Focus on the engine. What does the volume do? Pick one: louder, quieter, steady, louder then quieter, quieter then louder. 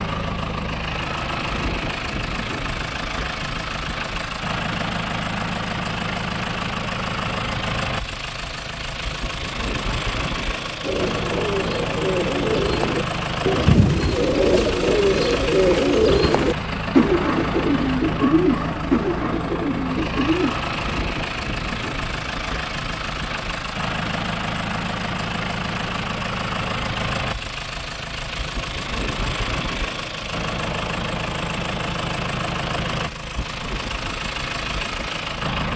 steady.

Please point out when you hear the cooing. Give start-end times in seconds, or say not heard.
10.8-20.6.